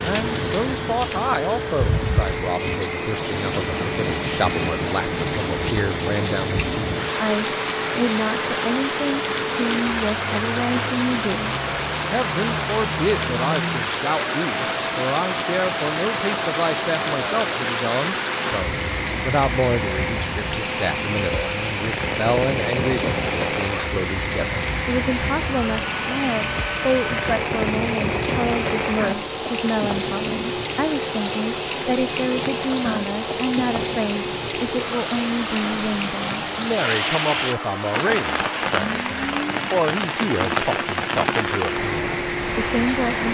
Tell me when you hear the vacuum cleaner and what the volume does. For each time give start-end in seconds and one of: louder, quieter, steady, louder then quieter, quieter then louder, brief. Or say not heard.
0.0-43.1 steady.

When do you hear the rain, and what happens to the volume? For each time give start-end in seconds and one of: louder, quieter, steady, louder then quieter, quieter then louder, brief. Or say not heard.
0.0-43.2 steady.